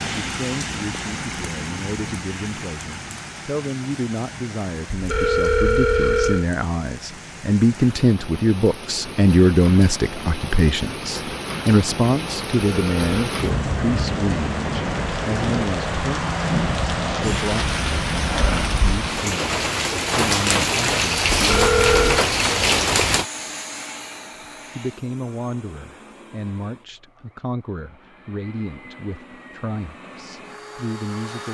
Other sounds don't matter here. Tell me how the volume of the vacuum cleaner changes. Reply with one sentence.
The loudness of the vacuum cleaner goes down, then up.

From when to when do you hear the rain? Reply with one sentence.
You can hear the rain from 0.0 to 23.2 s.